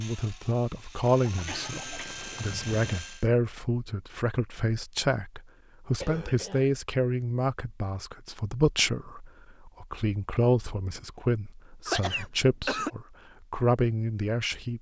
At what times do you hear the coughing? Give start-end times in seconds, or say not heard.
1.4-2.2, 6.0-6.7, 11.8-12.9.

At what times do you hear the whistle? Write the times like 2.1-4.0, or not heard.
not heard.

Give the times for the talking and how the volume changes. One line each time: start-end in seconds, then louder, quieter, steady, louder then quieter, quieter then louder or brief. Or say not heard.
0.0-14.7 steady.